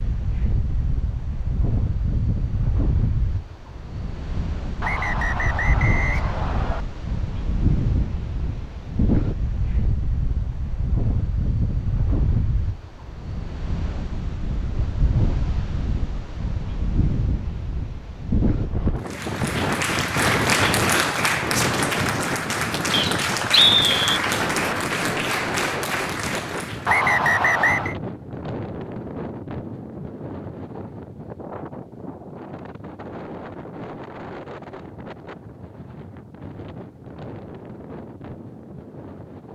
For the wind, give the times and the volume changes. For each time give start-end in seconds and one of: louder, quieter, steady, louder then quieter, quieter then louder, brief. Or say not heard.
0.0-39.5 quieter.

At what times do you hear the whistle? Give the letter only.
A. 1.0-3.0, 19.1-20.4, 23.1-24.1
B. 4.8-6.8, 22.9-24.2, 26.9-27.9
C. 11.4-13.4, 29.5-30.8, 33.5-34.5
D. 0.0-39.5
B.